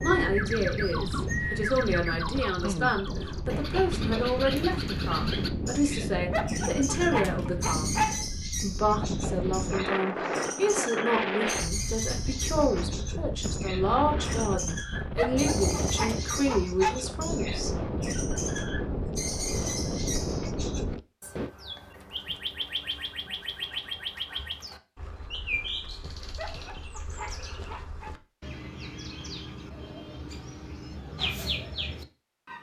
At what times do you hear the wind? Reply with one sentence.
The wind can be heard from 0.0 to 21.5 s.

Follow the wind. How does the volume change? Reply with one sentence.
The loudness of the wind stays about the same.